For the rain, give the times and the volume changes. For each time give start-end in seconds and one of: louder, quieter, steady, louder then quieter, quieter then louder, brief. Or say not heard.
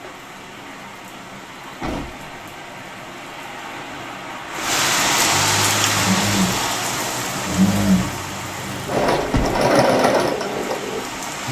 0.0-11.4 louder then quieter.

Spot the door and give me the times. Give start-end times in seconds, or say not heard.
1.8-2.4, 9.2-9.7.